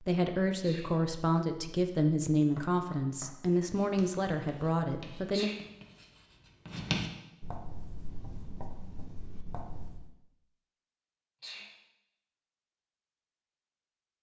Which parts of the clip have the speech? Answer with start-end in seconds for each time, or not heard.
0.0-5.5.